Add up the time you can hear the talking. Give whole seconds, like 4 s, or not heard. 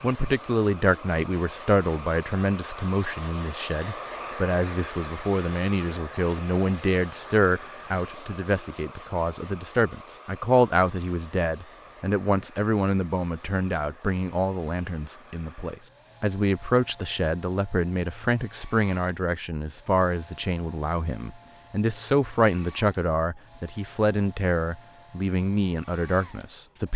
27 s.